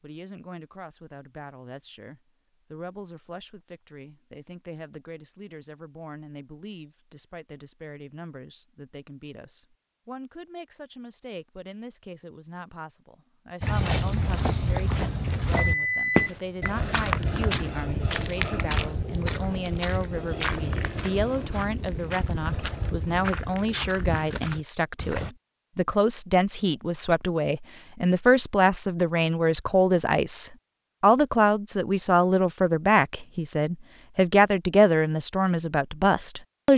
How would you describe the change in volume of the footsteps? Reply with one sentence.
The volume of the footsteps goes down.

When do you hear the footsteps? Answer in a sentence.
The footsteps can be heard from 13.6 to 25.4 s.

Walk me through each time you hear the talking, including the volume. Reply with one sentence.
The talking can be heard from 0.0 to 36.7 s, getting louder.